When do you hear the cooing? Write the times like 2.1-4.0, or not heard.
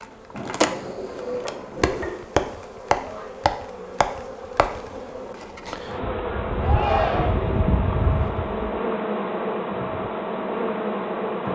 0.3-2.2, 6.0-8.8.